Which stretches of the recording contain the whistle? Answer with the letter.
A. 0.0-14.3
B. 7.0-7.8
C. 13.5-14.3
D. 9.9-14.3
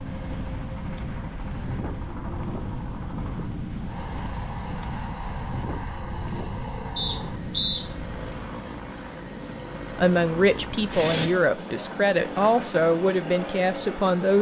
B.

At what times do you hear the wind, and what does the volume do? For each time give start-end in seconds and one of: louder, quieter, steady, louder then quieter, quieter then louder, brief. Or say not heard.
0.0-8.4 steady.